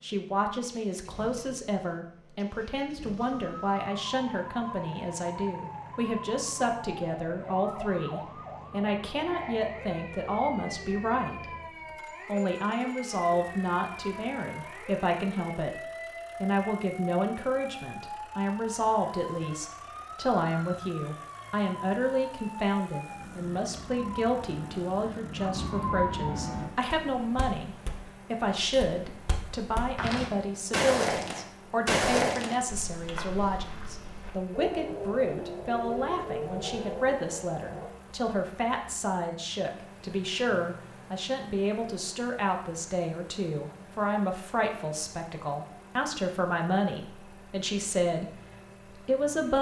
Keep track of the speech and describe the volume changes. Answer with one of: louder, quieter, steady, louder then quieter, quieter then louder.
steady.